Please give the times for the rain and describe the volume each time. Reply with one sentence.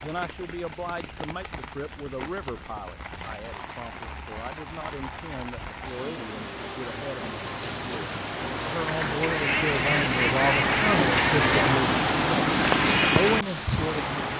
You can hear the rain from 0.0 to 14.3 s, getting louder.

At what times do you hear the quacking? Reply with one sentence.
You can hear the quacking from 9.2 to 11.8 s.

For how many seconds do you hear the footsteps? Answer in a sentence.
The footsteps can't be heard in this clip.